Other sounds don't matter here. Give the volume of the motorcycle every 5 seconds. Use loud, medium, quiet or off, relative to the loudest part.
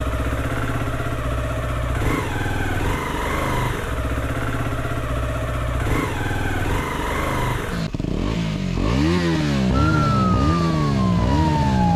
medium, loud, loud.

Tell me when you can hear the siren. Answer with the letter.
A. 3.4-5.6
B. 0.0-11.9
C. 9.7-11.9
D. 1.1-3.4
C.